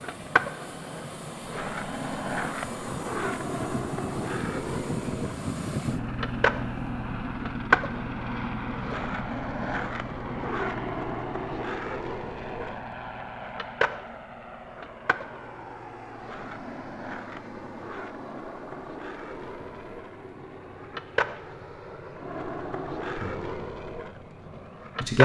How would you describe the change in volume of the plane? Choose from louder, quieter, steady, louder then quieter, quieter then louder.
quieter.